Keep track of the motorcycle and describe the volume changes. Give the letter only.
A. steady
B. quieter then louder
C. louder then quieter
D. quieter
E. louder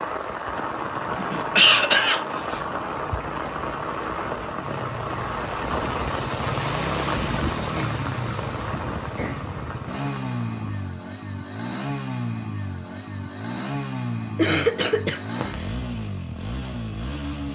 E.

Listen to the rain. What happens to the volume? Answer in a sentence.
The volume of the rain goes down.